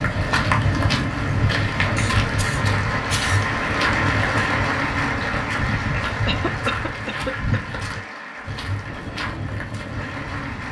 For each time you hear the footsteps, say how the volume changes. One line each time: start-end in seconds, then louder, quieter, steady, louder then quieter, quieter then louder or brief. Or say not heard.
0.0-10.6 quieter.